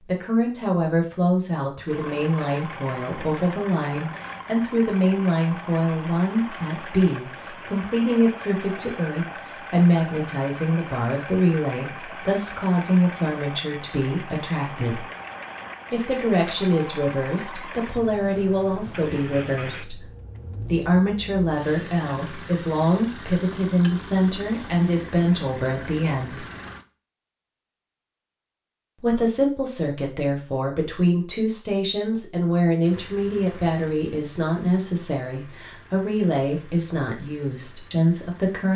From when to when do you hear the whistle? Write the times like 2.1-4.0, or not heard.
not heard.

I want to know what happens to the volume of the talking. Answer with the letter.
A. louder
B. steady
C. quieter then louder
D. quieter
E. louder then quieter
B.